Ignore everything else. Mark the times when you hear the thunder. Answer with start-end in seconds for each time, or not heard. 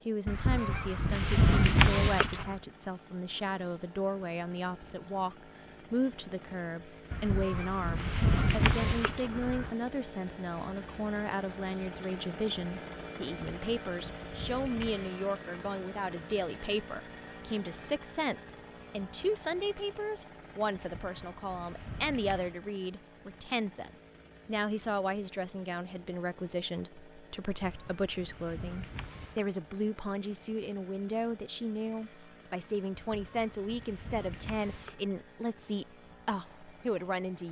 not heard.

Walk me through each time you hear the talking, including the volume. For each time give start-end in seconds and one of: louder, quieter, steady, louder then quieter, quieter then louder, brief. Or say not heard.
0.1-37.4 steady.